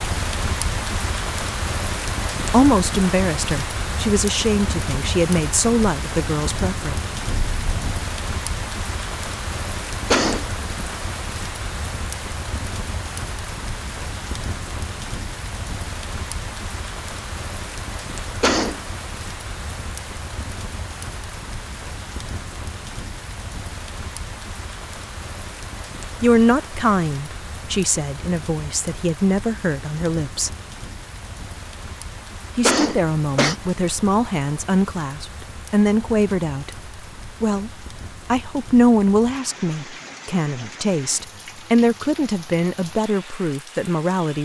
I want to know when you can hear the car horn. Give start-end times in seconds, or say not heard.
7.2-8.0.